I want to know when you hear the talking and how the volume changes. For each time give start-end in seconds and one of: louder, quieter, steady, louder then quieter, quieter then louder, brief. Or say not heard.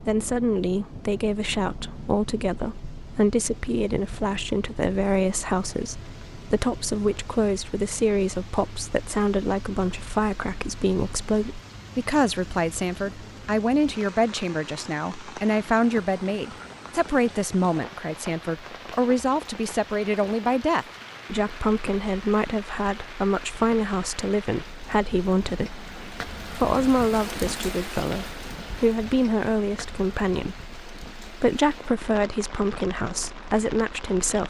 0.0-34.4 steady.